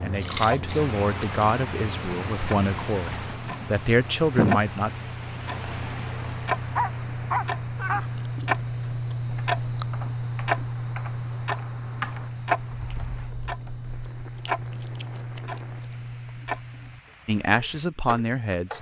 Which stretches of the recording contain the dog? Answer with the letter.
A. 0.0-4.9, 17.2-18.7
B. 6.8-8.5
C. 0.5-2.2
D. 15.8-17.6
B.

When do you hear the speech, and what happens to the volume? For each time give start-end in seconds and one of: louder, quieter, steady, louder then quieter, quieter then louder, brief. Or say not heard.
0.0-4.9 quieter then louder
17.2-18.7 brief.